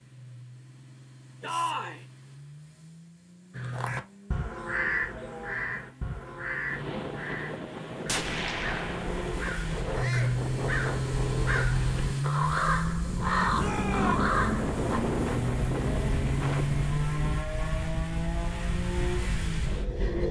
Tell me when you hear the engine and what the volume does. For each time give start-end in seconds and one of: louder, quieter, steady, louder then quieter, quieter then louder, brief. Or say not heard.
0.0-20.2 louder.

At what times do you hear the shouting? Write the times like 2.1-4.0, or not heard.
1.4-2.0, 9.9-10.4, 13.6-14.3.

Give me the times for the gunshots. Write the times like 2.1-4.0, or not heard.
8.1-9.3.